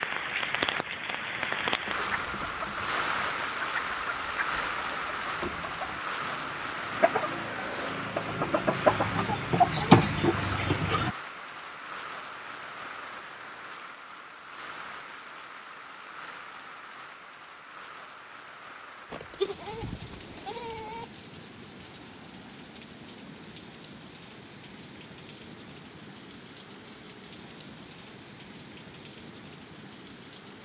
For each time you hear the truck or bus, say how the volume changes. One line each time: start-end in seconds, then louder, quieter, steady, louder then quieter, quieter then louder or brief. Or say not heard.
not heard.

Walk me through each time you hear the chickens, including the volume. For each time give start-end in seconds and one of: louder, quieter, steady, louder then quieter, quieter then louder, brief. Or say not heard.
1.8-11.1 louder.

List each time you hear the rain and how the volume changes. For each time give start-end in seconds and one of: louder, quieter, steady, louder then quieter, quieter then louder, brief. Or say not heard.
0.0-30.6 quieter.